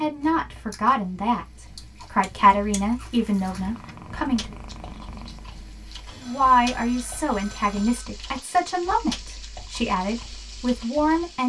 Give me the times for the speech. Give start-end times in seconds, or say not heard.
0.0-4.5, 6.2-11.4.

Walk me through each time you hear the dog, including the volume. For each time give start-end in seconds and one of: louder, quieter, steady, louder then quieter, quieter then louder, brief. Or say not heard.
not heard.